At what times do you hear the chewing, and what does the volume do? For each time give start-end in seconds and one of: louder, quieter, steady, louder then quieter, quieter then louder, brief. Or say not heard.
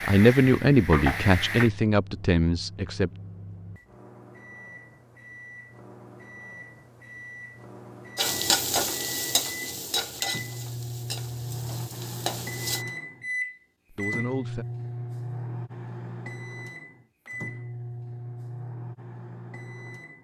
not heard.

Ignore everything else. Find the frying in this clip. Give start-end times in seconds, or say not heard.
0.0-1.7, 8.2-12.8.